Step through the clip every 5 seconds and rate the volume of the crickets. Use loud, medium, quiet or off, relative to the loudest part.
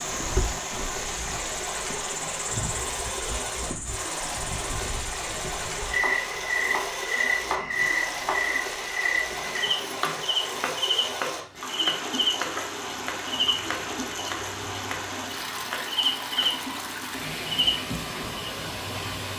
medium, loud, loud, loud.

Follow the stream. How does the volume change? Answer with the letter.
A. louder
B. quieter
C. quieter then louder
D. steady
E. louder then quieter
D.